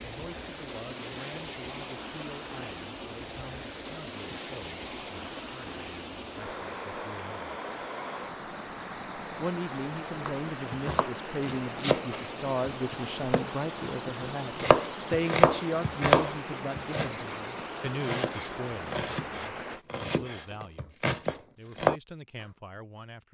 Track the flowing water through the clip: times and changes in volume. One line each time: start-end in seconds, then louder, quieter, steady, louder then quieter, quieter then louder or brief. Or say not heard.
0.0-19.9 steady.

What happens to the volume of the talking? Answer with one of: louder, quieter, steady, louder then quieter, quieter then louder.
louder then quieter.